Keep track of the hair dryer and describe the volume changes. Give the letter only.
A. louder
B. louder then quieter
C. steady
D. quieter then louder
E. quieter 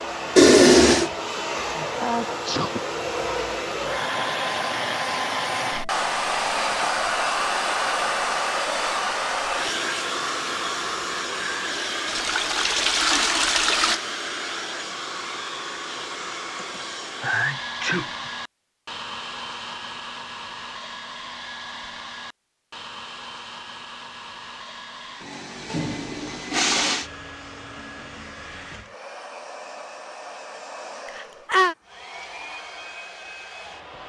E.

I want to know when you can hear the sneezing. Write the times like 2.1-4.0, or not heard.
2.0-2.8, 16.6-18.3, 31.1-31.8.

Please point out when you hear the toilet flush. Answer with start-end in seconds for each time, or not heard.
0.3-1.1, 12.1-14.0, 25.2-27.1.